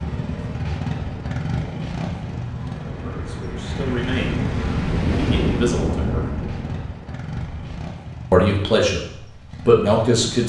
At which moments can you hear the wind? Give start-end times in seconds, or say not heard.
0.1-7.7.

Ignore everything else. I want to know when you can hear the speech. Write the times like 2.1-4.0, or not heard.
3.0-6.2, 8.3-9.0, 9.7-10.4.